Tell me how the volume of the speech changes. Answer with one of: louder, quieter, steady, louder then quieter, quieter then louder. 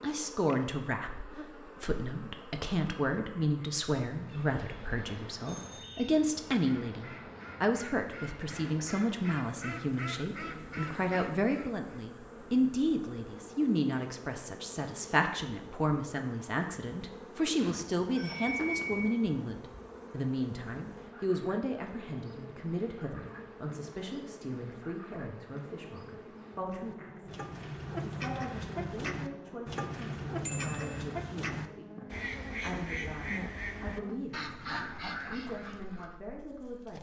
quieter.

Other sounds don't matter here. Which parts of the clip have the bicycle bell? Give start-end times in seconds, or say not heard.
5.5-6.2, 17.6-19.1, 30.4-31.1.